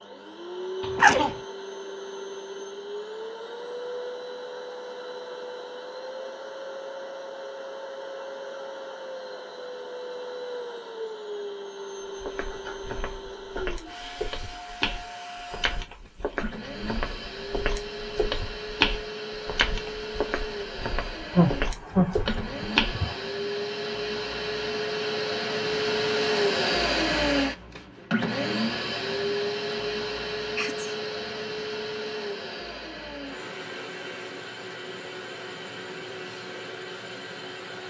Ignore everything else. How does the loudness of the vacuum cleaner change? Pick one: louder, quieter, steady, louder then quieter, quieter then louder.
louder then quieter.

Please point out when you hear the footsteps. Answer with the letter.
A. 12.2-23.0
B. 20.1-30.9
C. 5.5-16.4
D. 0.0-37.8
A.